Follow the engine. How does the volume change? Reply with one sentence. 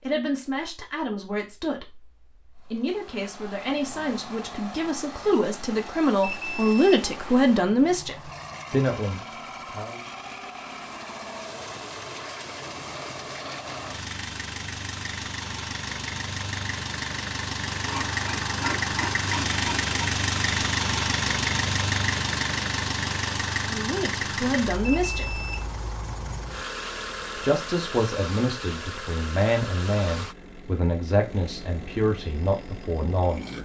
The loudness of the engine goes up, then down.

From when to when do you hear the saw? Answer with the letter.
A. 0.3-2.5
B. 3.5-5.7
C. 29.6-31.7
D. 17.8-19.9
D.